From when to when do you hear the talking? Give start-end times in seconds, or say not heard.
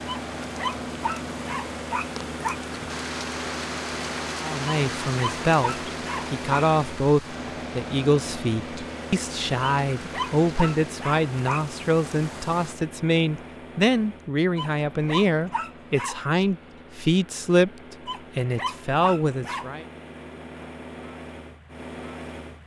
4.4-19.9.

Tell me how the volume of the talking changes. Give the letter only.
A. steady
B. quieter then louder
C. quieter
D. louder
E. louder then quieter
A.